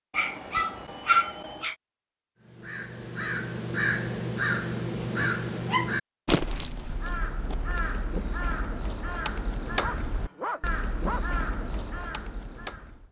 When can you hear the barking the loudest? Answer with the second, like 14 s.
1 s.